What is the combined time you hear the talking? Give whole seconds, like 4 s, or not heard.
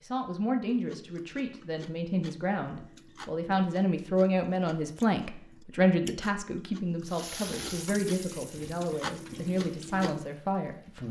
11 s.